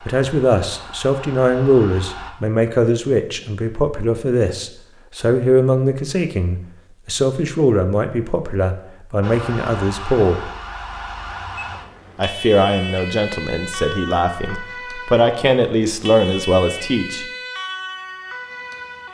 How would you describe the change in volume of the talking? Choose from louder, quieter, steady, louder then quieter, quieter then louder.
steady.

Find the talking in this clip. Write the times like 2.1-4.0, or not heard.
0.0-10.5, 12.2-17.2.